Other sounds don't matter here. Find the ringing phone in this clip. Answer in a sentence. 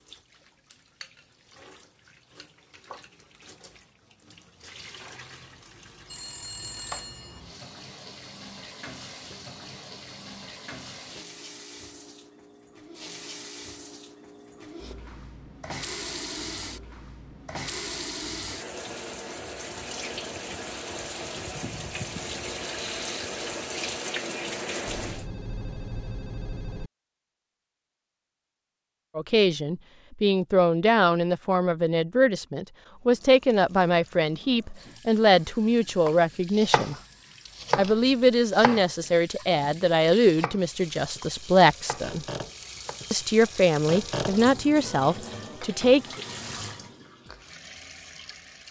You can hear the ringing phone from 6.0 to 7.4 s and from 24.9 to 26.9 s.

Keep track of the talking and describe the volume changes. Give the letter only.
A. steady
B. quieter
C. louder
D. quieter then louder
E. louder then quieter
A.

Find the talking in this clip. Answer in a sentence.
You can hear the talking from 29.1 to 37.0 s, from 37.8 to 42.2 s and from 43.1 to 46.2 s.